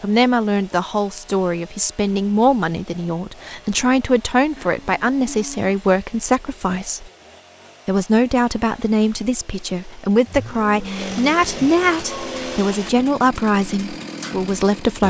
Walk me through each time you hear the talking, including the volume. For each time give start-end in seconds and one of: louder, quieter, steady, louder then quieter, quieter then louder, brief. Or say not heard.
0.0-7.1 steady
7.8-15.0 steady.